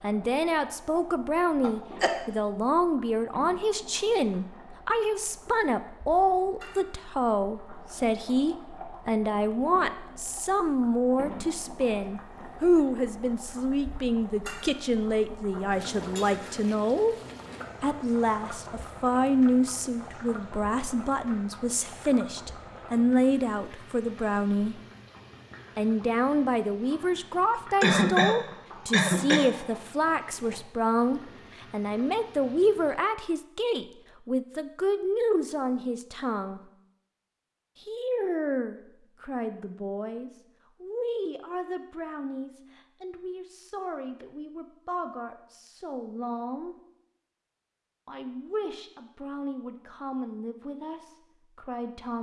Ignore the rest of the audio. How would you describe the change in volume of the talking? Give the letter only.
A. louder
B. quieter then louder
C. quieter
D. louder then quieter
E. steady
C.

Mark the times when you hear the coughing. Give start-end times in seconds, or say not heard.
1.6-2.2, 27.8-29.6.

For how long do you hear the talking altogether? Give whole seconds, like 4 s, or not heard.
48 s.